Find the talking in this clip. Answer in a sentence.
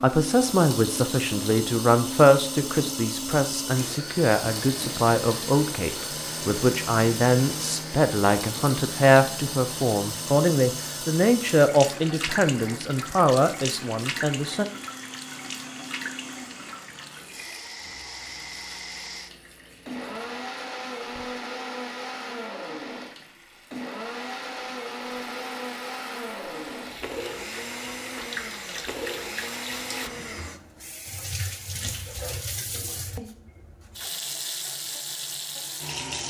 The talking can be heard from 0.0 to 14.7 s.